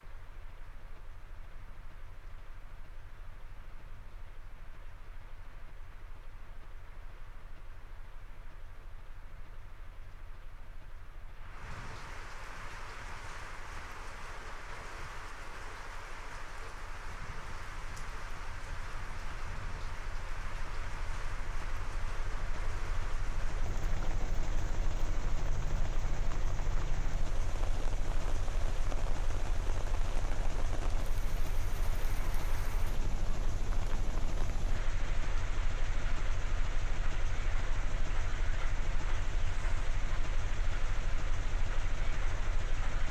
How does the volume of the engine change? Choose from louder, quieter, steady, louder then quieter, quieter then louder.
louder.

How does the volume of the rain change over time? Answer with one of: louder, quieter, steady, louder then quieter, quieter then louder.
louder.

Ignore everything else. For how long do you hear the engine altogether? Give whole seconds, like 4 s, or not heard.
43 s.